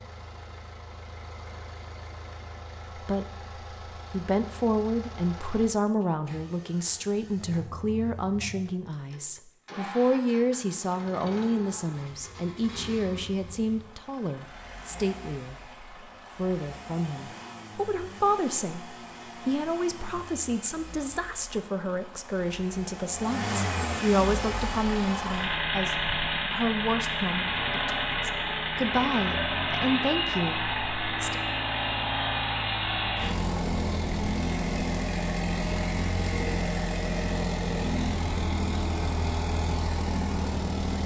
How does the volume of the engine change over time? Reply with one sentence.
The volume of the engine goes up.